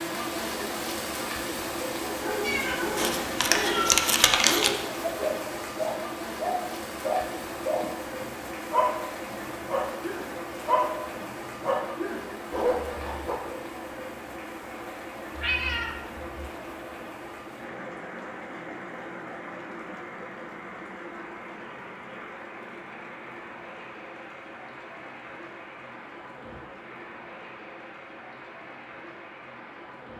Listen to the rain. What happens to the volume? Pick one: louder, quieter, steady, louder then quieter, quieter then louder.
quieter.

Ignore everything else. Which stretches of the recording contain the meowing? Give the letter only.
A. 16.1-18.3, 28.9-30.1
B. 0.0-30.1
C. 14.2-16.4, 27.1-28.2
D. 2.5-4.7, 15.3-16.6
D.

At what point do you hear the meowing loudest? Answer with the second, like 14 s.
4 s.